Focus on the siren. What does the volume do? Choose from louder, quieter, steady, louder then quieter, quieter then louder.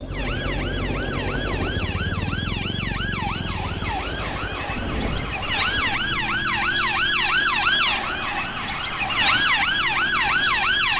louder.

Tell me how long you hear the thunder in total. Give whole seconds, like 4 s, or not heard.
2 s.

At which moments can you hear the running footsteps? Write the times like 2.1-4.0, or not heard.
not heard.